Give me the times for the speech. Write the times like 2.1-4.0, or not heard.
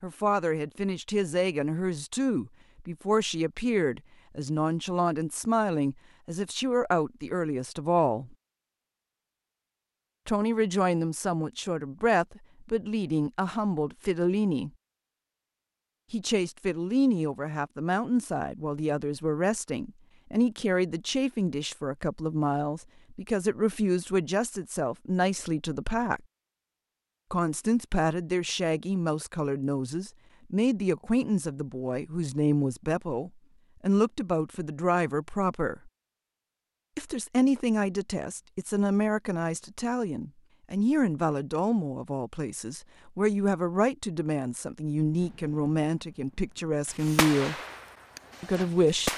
0.0-8.3, 10.2-14.7, 16.1-26.2, 27.3-35.9, 37.0-47.5, 48.4-49.1.